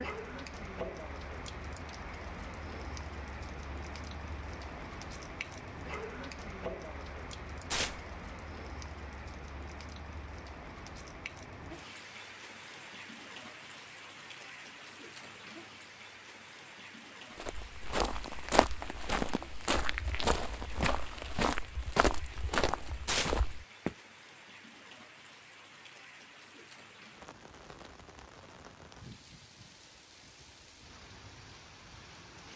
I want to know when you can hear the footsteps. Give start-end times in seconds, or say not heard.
17.4-23.9.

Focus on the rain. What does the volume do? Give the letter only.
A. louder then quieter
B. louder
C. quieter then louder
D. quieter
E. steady
D.